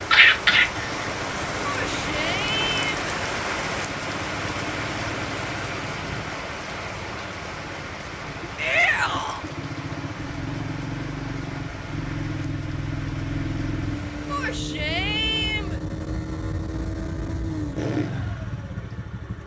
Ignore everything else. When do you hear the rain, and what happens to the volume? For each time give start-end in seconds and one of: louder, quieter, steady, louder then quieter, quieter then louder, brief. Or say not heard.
0.0-14.6 quieter.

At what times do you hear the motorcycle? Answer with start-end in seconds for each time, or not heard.
0.0-19.4.